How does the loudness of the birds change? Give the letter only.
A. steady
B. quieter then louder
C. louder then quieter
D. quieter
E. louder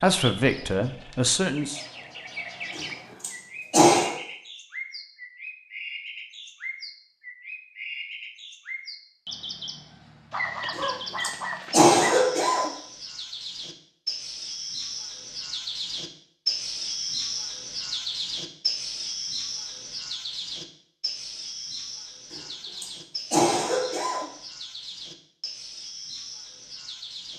C.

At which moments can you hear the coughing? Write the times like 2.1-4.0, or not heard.
2.8-4.2, 10.8-12.7, 22.3-24.2.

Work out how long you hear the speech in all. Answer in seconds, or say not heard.
2 s.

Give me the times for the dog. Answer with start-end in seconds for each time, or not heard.
10.3-12.3.